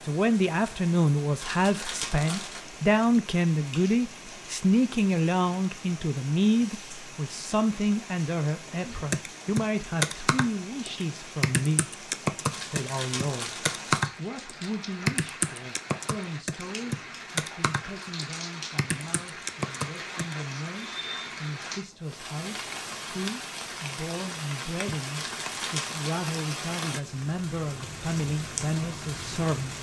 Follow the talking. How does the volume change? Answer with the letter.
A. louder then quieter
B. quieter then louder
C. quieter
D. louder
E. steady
B.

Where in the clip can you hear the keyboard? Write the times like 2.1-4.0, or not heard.
8.9-20.4.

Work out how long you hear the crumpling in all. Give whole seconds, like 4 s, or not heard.
4 s.